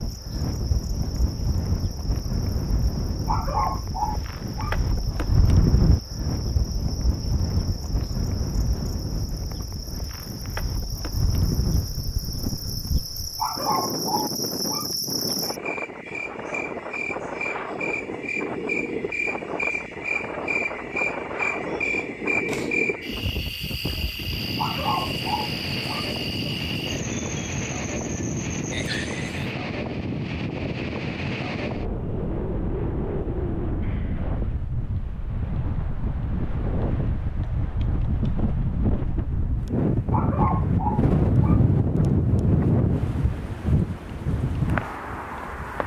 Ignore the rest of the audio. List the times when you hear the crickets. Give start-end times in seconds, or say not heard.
0.0-29.6.